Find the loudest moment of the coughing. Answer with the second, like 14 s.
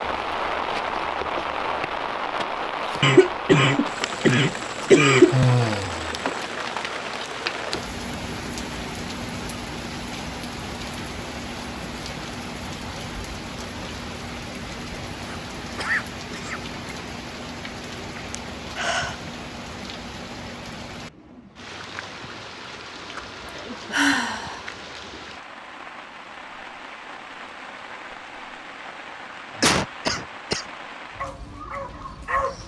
5 s.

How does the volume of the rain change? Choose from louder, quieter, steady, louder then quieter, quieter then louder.
quieter.